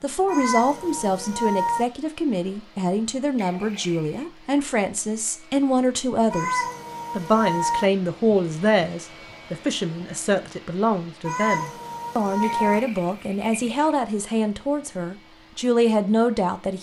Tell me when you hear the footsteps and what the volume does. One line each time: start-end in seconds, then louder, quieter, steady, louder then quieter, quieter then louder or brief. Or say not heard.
not heard.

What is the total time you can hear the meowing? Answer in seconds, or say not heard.
5 s.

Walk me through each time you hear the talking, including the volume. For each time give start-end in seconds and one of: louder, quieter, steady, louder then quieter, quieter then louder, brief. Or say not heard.
0.0-16.7 steady.